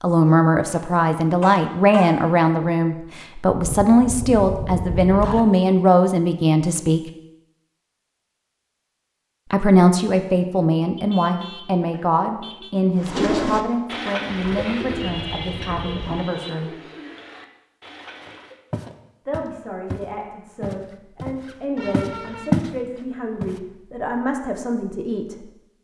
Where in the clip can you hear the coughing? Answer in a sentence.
You can't hear the coughing here.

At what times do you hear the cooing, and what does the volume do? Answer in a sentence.
The cooing can be heard from 12.9 to 18.6 s, getting quieter.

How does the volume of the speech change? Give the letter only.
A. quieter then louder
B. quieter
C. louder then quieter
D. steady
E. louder
B.